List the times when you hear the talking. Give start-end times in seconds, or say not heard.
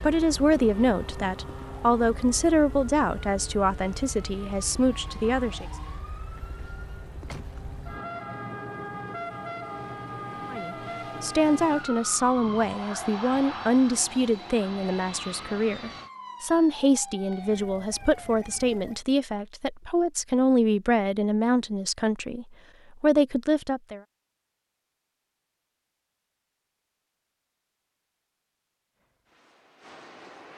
0.0-5.7, 10.5-24.0.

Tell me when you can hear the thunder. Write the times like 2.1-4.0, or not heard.
not heard.